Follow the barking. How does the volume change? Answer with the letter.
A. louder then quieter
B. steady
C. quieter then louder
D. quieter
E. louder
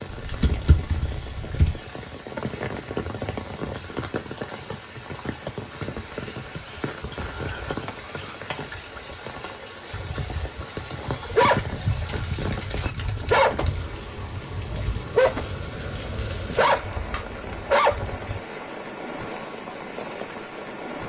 E.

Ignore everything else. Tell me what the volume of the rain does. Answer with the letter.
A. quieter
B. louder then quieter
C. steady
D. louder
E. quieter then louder
C.